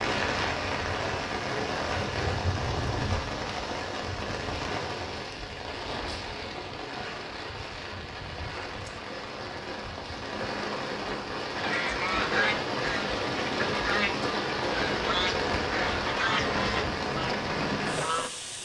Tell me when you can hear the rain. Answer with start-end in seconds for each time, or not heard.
0.0-18.6.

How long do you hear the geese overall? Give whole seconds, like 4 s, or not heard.
7 s.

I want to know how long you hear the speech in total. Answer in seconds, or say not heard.
not heard.